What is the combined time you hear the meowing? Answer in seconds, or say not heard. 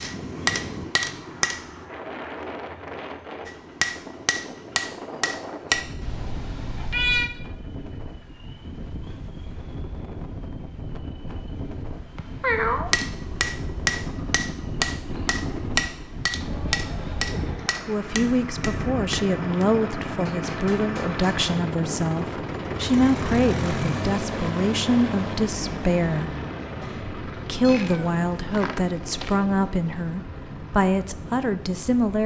4 s.